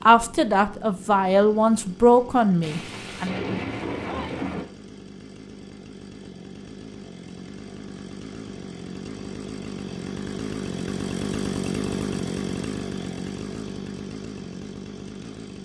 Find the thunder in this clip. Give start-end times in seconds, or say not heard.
2.6-4.7.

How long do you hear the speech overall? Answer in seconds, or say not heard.
3 s.